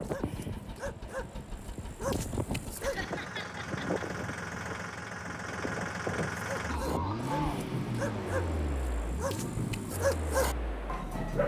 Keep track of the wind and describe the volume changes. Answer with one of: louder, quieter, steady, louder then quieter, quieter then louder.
steady.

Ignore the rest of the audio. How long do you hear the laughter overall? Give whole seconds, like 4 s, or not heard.
3 s.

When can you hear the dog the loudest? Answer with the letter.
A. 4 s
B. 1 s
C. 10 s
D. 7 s
C.